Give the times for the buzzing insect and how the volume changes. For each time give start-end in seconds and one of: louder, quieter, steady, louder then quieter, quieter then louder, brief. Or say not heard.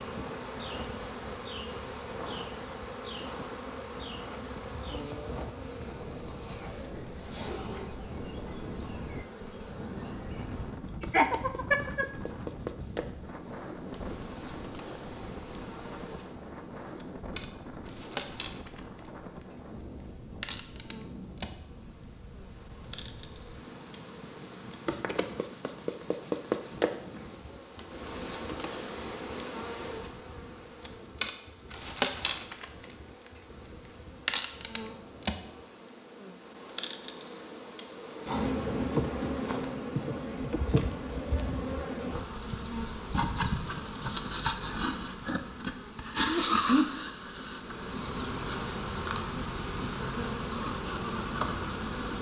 0.0-52.1 louder.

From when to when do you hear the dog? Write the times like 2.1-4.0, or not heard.
not heard.